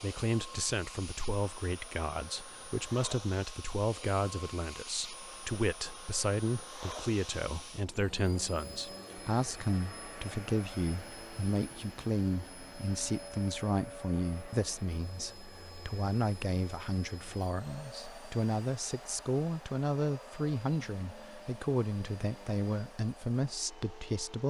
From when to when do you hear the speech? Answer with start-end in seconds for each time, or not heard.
0.0-24.4.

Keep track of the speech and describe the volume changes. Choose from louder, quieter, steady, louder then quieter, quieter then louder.
steady.